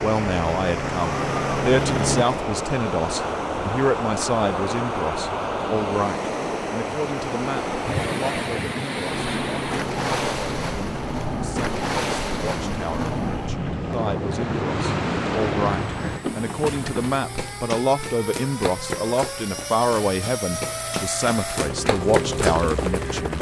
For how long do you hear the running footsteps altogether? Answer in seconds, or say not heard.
7 s.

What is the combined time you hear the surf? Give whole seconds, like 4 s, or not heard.
17 s.